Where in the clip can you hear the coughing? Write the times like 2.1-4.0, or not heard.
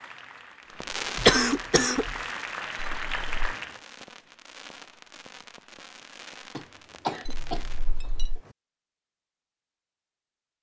1.1-2.2, 6.5-8.6.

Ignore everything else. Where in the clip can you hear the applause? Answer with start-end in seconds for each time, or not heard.
0.0-3.8.